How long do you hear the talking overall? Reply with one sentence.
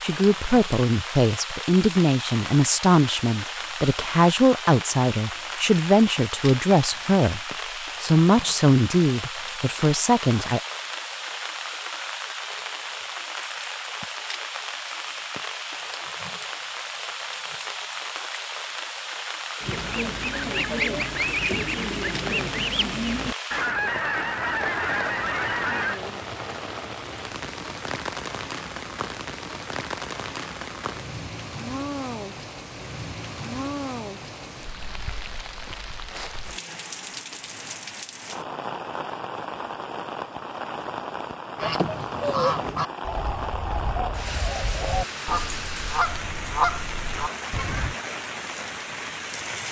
You can hear the talking for 10 seconds altogether.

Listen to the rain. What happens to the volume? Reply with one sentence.
The loudness of the rain stays about the same.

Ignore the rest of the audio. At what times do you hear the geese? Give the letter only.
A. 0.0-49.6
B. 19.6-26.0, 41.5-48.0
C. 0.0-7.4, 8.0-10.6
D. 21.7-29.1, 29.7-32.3
B.